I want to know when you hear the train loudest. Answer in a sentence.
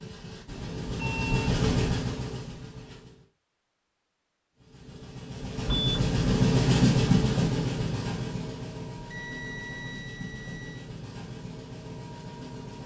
The loudest moment of the train is at 7 seconds.